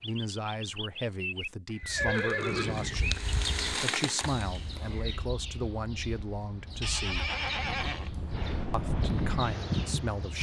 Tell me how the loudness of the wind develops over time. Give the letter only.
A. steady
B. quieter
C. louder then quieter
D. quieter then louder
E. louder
E.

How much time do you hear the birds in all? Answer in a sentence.
The birds can be heard for 10 seconds in total.